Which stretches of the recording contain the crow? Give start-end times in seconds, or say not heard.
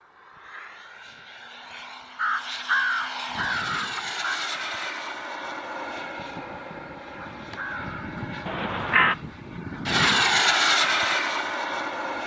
2.1-4.4, 7.2-9.2.